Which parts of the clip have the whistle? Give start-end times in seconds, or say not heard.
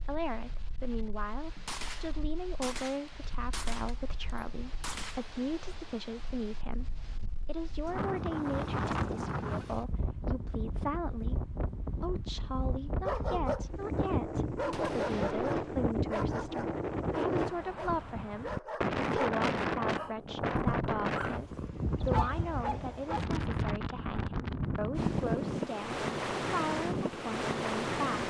not heard.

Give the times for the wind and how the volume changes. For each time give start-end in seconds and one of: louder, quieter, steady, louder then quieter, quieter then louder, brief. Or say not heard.
0.0-28.2 louder.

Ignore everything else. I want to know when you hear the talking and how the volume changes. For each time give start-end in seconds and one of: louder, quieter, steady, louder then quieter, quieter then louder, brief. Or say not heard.
0.0-28.2 steady.